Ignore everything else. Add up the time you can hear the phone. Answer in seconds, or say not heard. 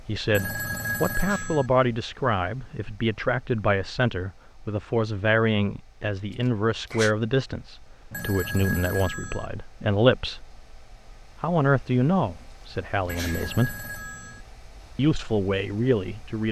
4 s.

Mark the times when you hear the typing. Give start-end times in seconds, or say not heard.
not heard.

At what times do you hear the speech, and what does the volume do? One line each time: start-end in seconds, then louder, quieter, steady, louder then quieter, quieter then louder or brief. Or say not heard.
0.1-10.6 steady
11.4-13.8 brief
14.9-16.4 brief.